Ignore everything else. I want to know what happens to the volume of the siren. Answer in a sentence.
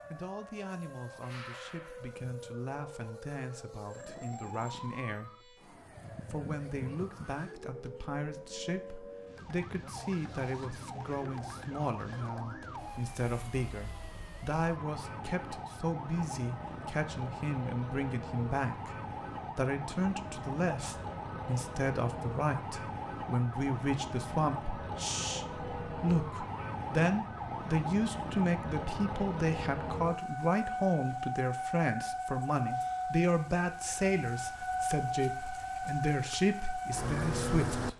The volume of the siren goes up.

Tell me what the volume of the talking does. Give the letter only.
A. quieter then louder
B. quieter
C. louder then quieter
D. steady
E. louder
E.